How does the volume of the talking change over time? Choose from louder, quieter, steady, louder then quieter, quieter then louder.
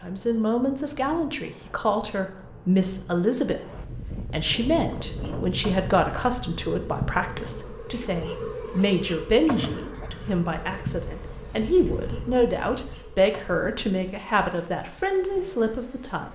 steady.